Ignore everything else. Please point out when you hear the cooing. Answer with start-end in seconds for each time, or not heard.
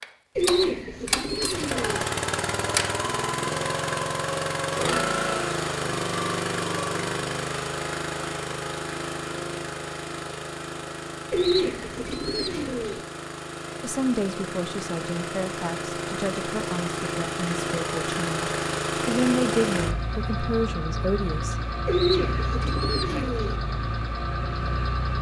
0.3-2.0, 11.3-13.0, 21.9-23.6.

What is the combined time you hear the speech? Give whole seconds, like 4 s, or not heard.
8 s.